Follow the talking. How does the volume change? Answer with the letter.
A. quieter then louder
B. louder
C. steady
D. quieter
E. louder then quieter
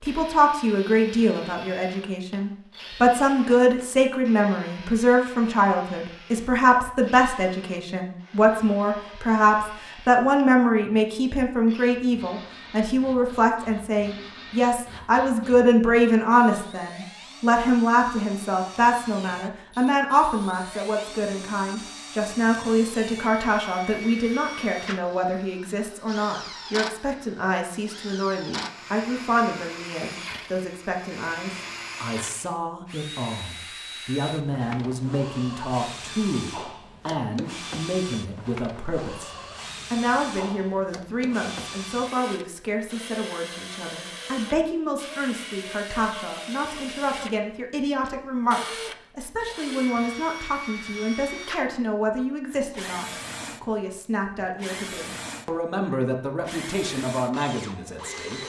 D.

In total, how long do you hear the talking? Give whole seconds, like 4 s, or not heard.
58 s.